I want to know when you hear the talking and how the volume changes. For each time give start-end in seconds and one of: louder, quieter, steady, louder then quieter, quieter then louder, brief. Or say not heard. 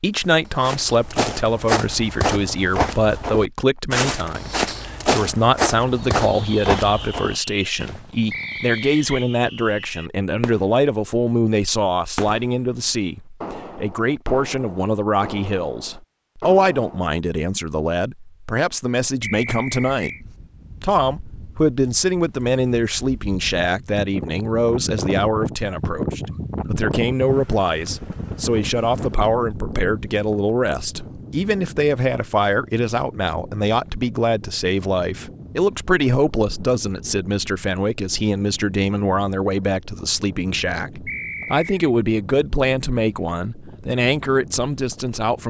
0.0-45.4 steady.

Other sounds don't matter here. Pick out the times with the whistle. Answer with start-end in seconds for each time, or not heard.
8.3-9.2, 19.2-20.2, 41.0-41.7.